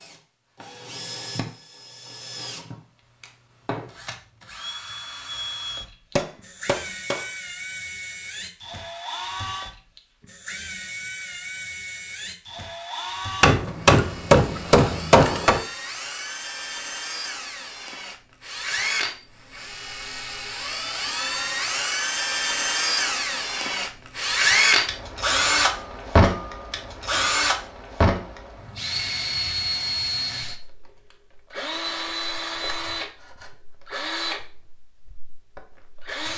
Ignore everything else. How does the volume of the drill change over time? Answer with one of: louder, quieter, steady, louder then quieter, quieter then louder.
louder then quieter.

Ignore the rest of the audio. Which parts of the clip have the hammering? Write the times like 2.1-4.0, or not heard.
6.2-7.2, 13.4-15.6, 25.4-27.4.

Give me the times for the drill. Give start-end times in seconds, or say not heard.
0.0-36.3.